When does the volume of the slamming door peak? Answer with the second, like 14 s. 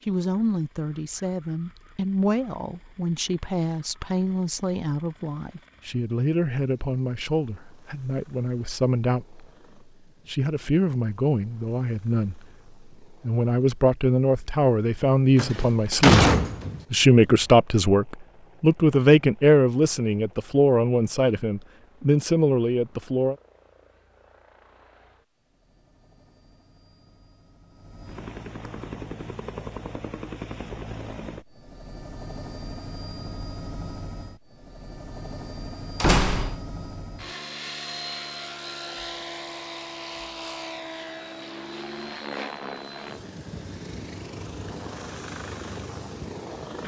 16 s.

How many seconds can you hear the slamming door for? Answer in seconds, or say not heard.
2 s.